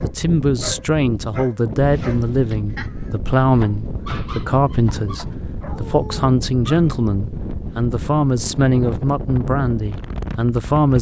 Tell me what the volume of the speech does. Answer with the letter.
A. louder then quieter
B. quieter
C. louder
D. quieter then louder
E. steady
E.